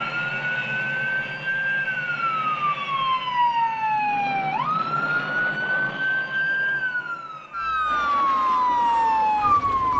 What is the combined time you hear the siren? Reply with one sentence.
You can hear the siren for 10 seconds altogether.